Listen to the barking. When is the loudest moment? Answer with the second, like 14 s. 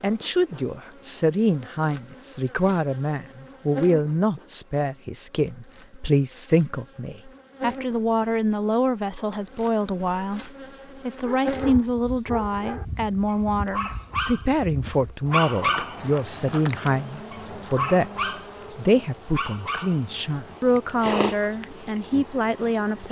16 s.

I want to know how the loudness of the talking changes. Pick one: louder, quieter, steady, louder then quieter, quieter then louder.
steady.